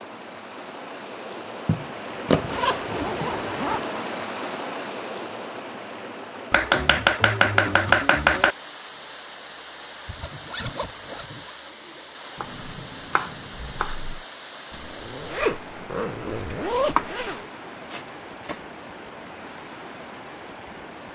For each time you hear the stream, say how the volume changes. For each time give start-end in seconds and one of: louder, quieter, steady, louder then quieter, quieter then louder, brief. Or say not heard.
0.0-21.1 quieter.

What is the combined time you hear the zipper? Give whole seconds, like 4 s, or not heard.
6 s.